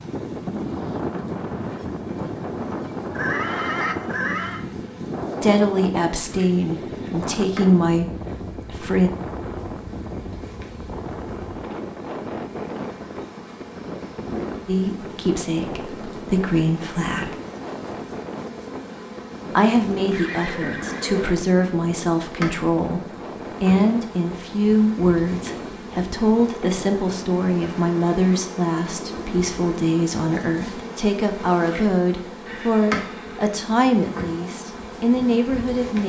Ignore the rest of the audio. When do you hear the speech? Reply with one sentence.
The speech can be heard from 5.4 to 9.1 s, from 14.7 to 17.4 s and from 19.5 to 36.0 s.